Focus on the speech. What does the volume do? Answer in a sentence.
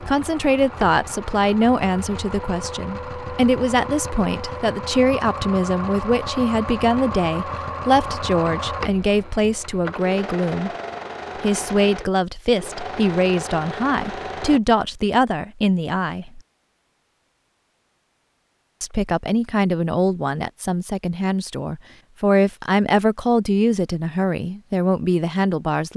The loudness of the speech stays about the same.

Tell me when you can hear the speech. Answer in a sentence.
You can hear the speech from 0.1 to 10.7 s, from 11.3 to 16.4 s and from 18.8 to 25.9 s.